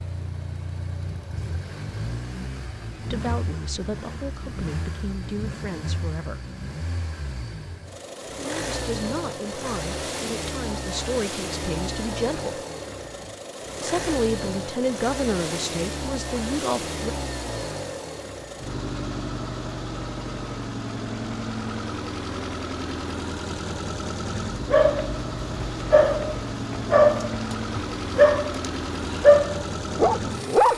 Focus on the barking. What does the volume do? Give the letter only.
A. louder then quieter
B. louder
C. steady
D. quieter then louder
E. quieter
D.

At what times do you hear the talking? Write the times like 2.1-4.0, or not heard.
3.0-6.4, 8.3-12.6, 13.8-17.1.